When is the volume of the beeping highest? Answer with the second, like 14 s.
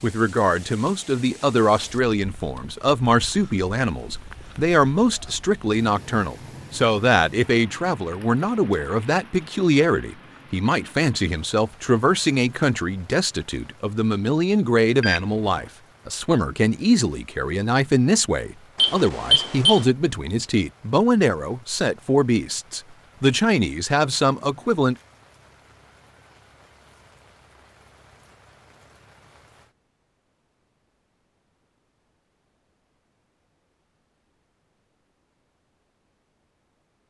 19 s.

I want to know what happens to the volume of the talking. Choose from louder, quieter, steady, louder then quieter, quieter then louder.
steady.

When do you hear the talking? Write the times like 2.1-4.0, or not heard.
0.0-24.9.